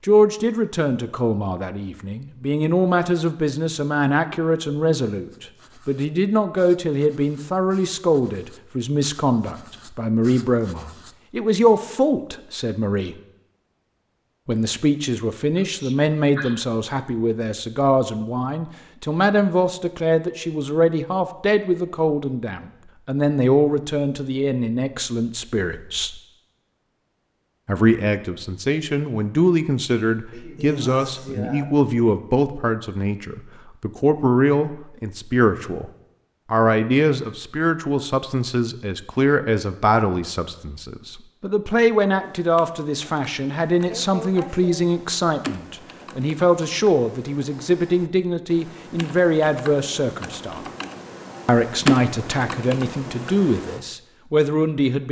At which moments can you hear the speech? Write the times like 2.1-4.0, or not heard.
0.0-13.2, 14.4-26.2, 27.6-35.9, 36.5-50.6, 51.5-55.0.